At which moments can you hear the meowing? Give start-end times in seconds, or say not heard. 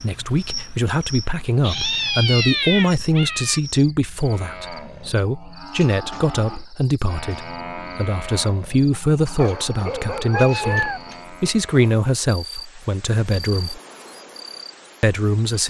1.6-3.6, 9.8-11.0.